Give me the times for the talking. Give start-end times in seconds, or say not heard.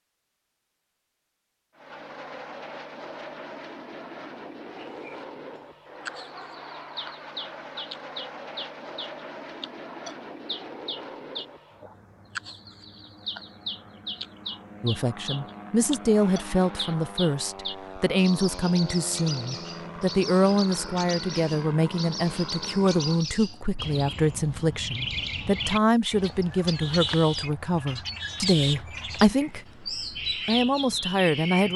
14.8-31.7.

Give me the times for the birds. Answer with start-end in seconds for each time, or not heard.
4.9-31.7.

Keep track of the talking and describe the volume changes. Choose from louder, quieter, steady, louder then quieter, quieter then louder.
steady.